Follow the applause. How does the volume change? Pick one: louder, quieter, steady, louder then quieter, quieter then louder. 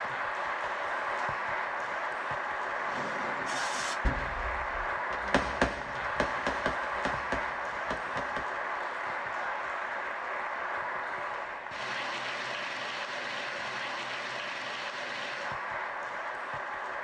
steady.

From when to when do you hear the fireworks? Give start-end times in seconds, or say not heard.
2.8-8.5.